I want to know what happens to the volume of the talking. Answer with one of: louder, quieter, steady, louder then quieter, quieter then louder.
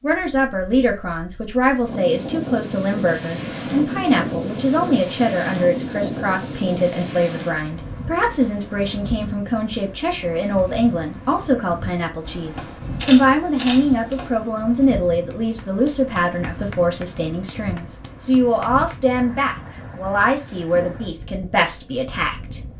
steady.